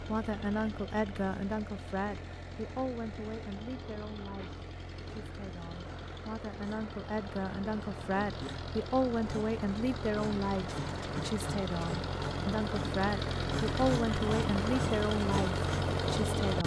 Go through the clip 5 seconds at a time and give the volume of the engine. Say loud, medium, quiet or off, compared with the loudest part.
quiet, medium, loud, loud.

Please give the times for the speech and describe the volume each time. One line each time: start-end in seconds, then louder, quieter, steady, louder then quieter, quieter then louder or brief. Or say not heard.
0.0-16.6 quieter then louder.